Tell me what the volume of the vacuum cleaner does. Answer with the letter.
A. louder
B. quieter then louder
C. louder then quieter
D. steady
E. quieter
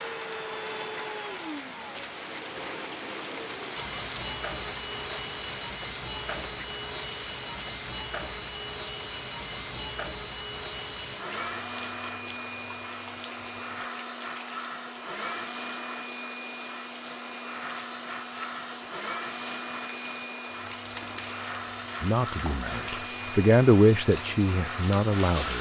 D.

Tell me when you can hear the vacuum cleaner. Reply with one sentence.
You can hear the vacuum cleaner from 0.0 to 25.5 s.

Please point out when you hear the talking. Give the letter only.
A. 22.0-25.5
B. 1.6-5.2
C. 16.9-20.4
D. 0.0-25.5
A.